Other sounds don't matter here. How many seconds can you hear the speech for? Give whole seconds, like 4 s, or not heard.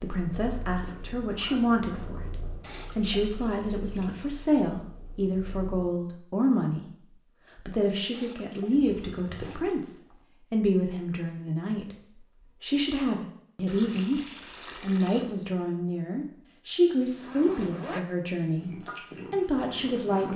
20 s.